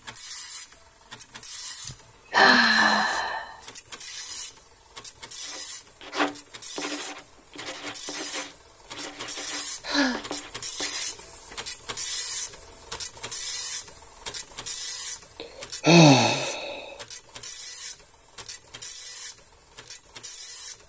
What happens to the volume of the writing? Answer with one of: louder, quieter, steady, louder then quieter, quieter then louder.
quieter.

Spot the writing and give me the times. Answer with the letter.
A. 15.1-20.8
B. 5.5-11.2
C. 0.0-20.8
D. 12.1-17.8
B.